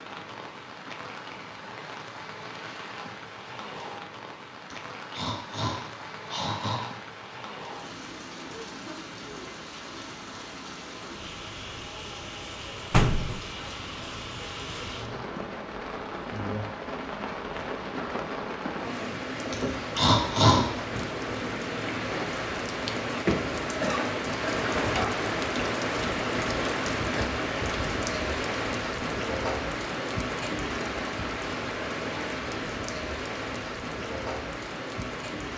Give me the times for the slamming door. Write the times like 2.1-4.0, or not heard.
12.9-13.4.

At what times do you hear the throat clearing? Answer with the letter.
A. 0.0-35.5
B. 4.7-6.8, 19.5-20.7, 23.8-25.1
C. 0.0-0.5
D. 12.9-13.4
B.